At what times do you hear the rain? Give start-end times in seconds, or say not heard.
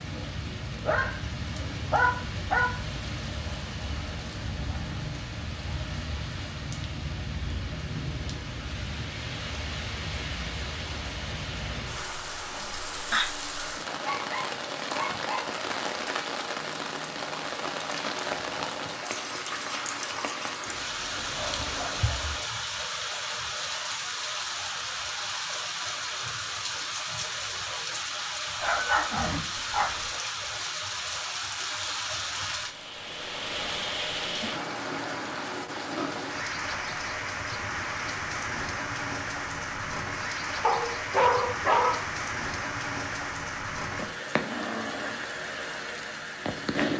0.0-46.9.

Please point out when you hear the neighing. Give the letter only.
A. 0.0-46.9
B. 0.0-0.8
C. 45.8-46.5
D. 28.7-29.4
D.